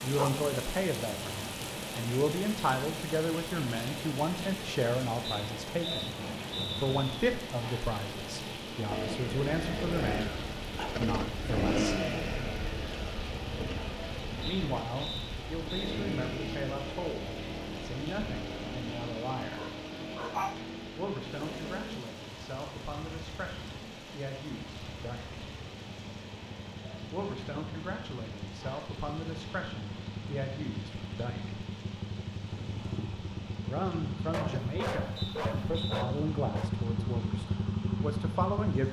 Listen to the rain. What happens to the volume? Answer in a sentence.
The volume of the rain goes down.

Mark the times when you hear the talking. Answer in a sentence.
The talking can be heard from 0.0 to 6.2 s, from 6.8 to 11.9 s, from 14.4 to 19.6 s, from 20.9 to 25.4 s, from 27.1 to 31.6 s and from 33.6 to 38.8 s.